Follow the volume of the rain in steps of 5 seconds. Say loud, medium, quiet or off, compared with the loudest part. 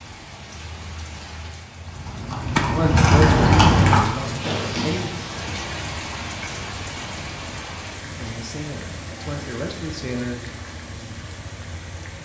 loud, loud, medium.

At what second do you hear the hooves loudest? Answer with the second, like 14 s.
4 s.